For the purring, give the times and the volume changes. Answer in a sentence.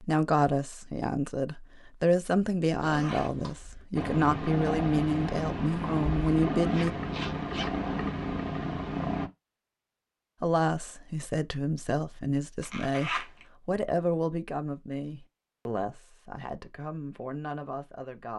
The purring can be heard from 4.0 to 9.3 s, at a steady volume.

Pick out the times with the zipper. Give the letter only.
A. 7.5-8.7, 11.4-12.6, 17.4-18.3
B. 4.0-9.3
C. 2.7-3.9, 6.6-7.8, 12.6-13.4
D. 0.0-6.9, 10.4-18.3
C.